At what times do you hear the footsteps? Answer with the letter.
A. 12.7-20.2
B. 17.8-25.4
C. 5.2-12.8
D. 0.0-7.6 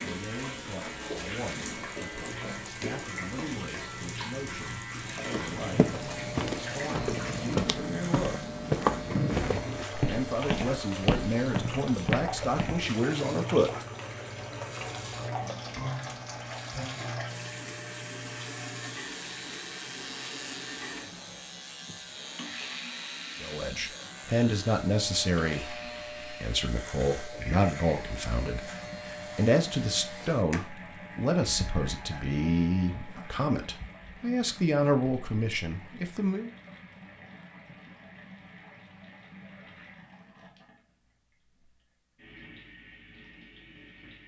C.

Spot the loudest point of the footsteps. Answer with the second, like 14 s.
9 s.